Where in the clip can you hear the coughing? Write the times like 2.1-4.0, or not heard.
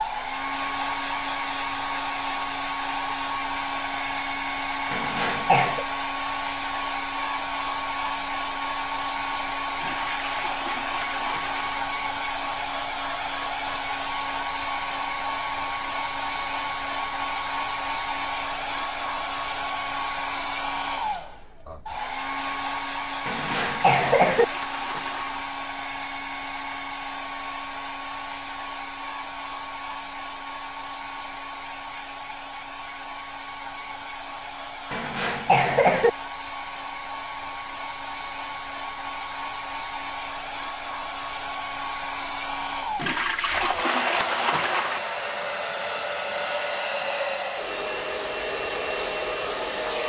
4.9-5.8, 23.2-24.4, 34.9-36.1.